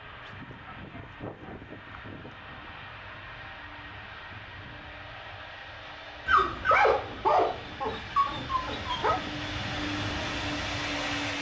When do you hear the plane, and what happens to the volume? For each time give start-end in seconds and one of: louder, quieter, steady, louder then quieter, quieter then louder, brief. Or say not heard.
0.0-11.3 louder.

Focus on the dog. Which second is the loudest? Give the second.
7 s.